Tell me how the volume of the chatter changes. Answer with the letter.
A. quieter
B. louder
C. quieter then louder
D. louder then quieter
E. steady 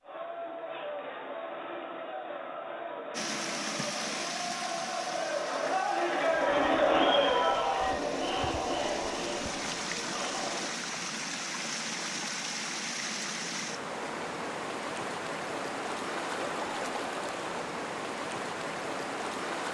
D.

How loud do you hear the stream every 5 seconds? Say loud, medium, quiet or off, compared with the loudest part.
loud, medium, loud, loud.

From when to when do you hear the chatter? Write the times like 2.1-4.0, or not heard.
0.0-10.8.